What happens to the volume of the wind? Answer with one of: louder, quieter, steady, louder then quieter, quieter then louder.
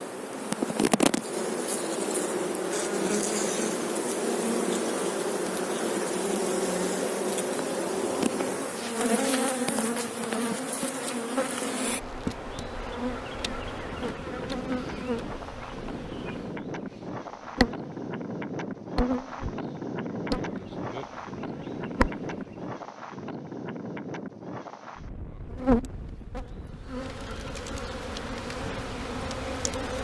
louder then quieter.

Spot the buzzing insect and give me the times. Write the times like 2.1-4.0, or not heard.
0.0-22.6, 25.5-29.9.